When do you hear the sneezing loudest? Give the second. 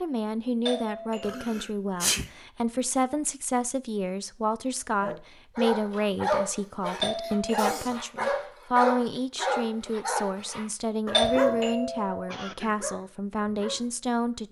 2 s.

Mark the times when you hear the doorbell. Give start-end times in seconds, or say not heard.
0.7-1.4, 7.0-7.7, 11.1-12.2.